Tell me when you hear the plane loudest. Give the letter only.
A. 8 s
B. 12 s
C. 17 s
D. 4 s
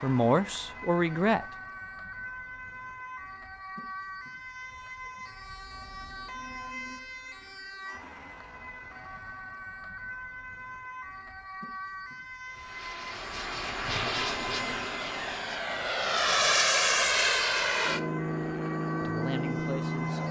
C.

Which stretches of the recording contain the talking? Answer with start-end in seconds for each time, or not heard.
0.0-1.4, 19.0-20.2.